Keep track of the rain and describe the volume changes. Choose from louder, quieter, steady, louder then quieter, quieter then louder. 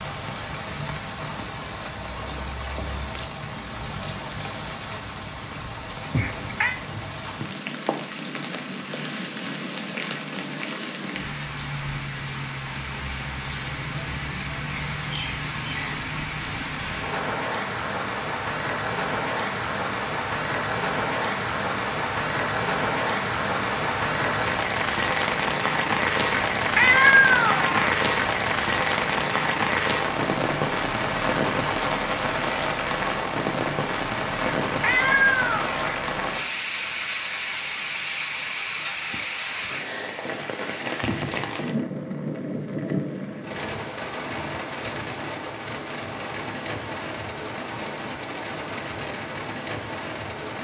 louder then quieter.